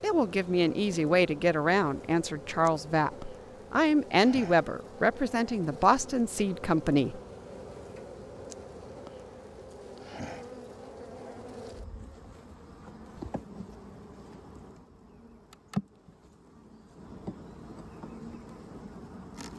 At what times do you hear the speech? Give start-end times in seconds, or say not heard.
0.0-7.2.